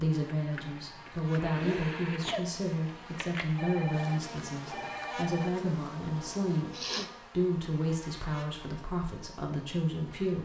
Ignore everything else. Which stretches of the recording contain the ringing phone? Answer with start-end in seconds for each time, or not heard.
3.5-5.5.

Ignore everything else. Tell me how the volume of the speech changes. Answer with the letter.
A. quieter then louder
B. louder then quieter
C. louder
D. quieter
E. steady
E.